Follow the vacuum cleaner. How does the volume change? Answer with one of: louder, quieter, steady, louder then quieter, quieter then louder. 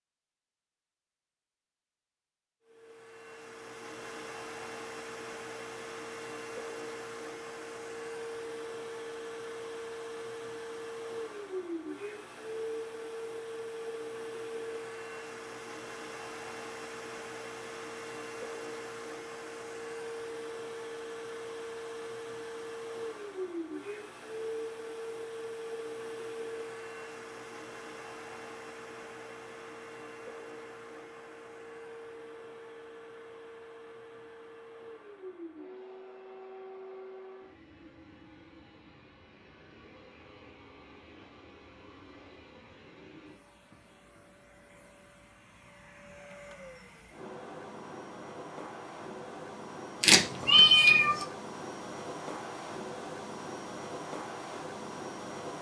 quieter then louder.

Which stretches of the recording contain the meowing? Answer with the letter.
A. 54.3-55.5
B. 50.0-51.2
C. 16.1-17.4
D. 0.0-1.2
B.